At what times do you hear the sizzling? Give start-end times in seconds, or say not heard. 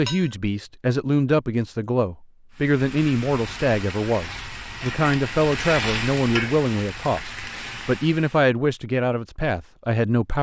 2.5-8.4.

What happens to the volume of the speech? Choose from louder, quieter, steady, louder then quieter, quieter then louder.
steady.